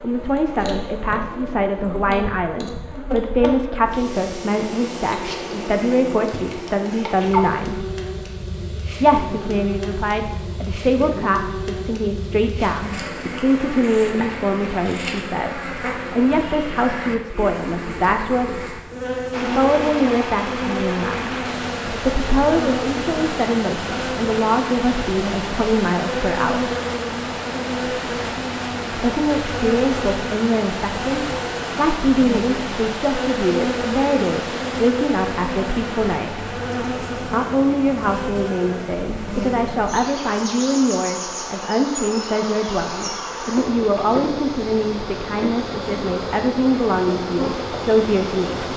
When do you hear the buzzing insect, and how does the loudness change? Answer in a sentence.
The buzzing insect can be heard from 0.0 to 48.7 s, at a steady volume.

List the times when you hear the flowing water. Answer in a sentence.
The flowing water can be heard from 19.3 to 48.7 s.